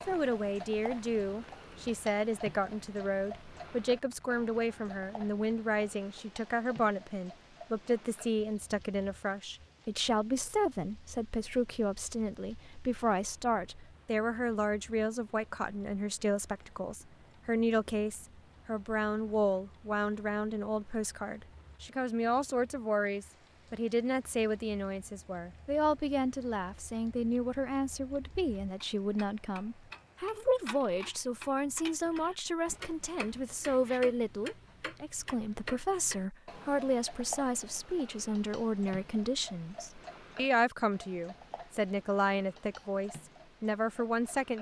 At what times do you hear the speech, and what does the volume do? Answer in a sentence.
You can hear the speech from 0.1 to 44.5 s, at a steady volume.